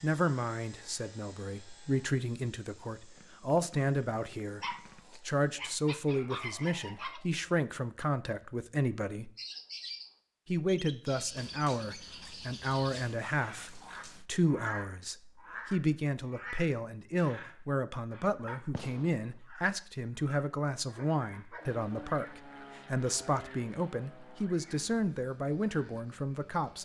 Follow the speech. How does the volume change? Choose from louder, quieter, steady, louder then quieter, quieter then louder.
steady.